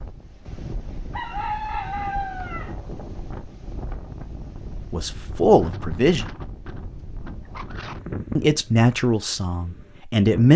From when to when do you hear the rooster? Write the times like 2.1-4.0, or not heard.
1.1-2.8.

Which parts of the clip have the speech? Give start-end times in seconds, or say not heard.
4.9-6.2, 8.3-10.5.